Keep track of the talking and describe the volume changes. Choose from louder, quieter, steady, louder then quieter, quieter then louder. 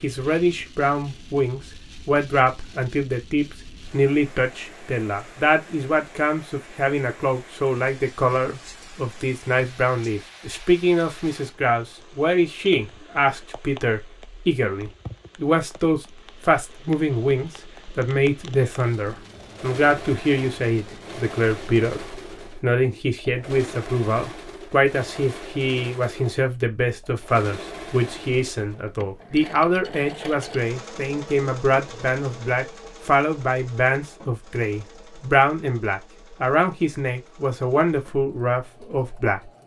steady.